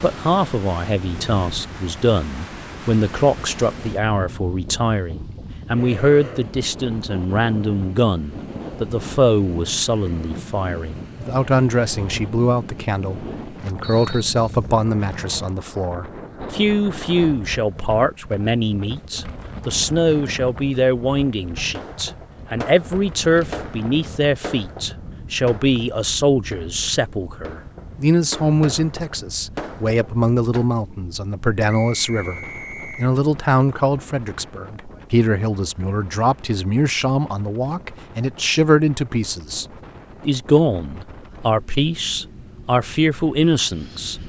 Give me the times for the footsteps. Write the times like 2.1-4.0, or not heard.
not heard.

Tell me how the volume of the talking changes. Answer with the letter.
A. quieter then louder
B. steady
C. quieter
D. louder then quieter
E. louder
B.